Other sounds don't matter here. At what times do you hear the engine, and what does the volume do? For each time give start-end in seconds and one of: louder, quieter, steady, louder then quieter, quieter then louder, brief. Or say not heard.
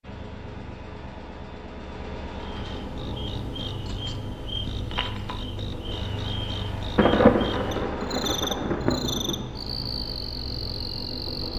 0.0-11.5 steady.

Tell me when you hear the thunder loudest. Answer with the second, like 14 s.
7 s.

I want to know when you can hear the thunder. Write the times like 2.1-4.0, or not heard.
7.0-9.4.